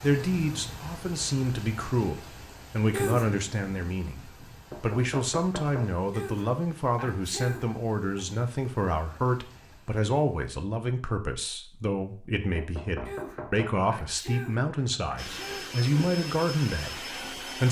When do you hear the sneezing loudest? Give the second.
3 s.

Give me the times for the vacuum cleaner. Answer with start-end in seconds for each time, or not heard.
15.2-17.6.